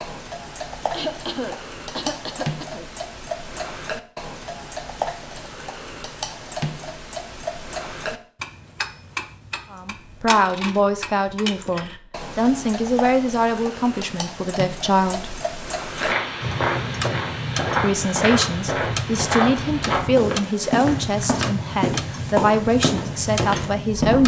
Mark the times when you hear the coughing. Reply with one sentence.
The coughing can be heard from 0.9 to 2.9 s.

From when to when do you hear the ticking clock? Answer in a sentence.
The ticking clock can be heard from 0.0 to 24.2 s.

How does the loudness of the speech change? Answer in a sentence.
The volume of the speech stays about the same.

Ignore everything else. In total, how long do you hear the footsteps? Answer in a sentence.
You can hear the footsteps for 8 seconds altogether.